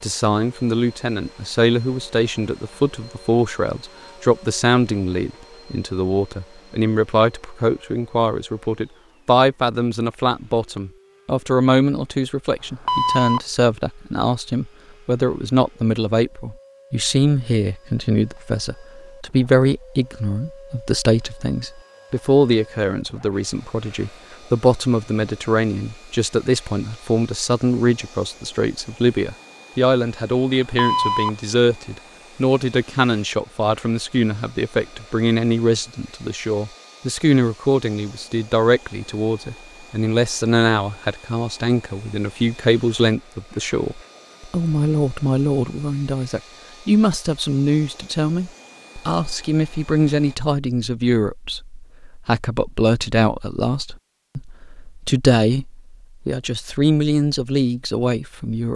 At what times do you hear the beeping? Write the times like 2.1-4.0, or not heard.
12.8-13.4, 30.8-31.3.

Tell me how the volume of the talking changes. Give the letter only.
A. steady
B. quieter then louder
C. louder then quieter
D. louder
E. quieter
A.